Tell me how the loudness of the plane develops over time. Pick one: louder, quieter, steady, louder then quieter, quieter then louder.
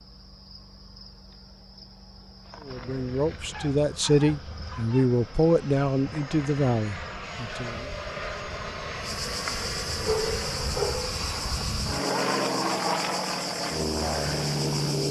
louder.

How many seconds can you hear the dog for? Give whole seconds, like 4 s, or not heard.
3 s.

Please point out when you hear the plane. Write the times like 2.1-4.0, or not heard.
2.6-15.0.